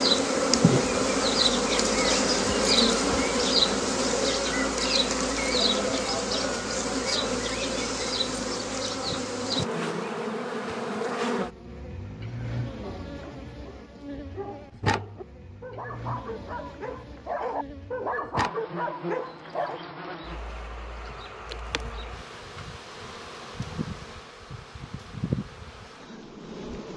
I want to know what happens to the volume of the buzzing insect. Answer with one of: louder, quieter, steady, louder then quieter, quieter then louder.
quieter.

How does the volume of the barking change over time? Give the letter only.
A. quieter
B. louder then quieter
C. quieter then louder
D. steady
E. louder
E.